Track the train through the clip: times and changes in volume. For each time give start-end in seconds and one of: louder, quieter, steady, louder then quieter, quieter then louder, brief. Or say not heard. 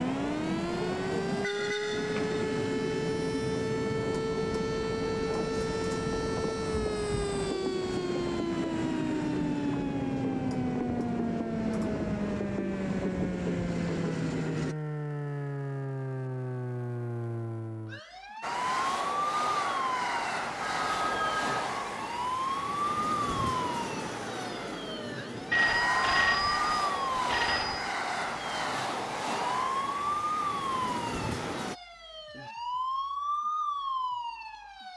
0.0-14.8 steady
18.4-31.8 steady.